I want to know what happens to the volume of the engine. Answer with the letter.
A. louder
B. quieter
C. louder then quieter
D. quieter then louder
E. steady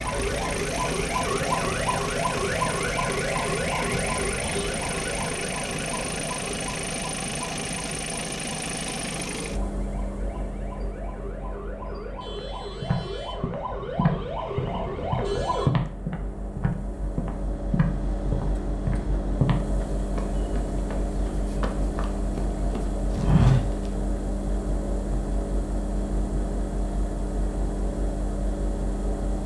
D.